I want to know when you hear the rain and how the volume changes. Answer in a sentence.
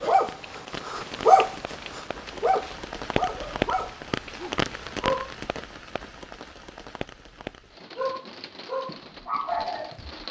The rain can be heard from 0.1 to 10.2 s, getting louder then quieter.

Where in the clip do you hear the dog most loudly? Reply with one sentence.
The volume of the dog peaks at 1 second.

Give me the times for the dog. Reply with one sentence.
You can hear the dog from 0.0 to 5.3 s and from 8.0 to 10.2 s.